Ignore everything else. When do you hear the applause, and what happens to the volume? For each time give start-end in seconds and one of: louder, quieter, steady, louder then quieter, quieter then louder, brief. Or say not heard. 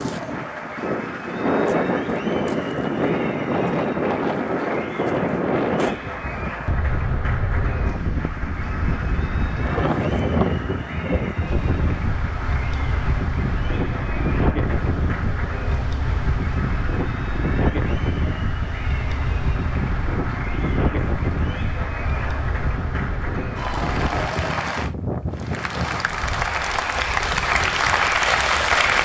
0.0-29.0 louder.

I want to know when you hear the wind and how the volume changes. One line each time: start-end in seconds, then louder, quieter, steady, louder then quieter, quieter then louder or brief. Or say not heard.
0.0-29.0 quieter.